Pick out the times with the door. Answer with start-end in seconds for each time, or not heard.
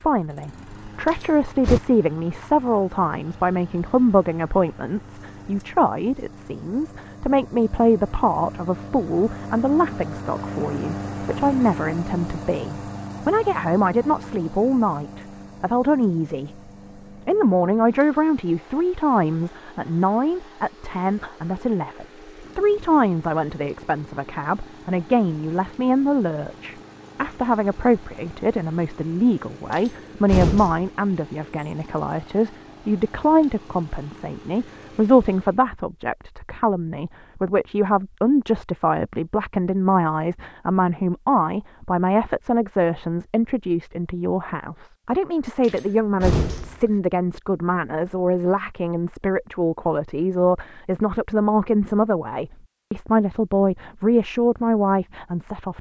1.1-1.8, 29.7-30.9, 45.6-46.9.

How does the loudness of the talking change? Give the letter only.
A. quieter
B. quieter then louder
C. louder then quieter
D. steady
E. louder
D.